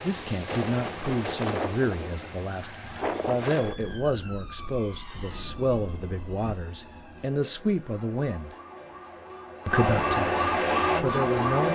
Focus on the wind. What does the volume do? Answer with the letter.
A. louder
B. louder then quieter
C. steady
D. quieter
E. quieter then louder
D.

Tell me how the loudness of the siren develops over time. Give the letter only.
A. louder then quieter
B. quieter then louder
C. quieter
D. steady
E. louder
E.